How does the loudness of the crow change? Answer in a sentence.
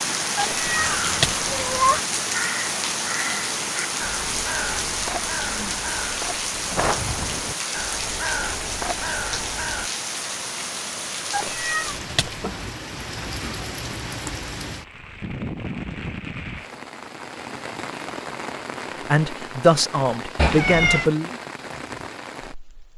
The volume of the crow stays about the same.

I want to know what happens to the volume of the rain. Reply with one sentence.
The loudness of the rain goes down.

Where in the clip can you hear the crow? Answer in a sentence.
The crow can be heard from 0.6 to 9.9 s.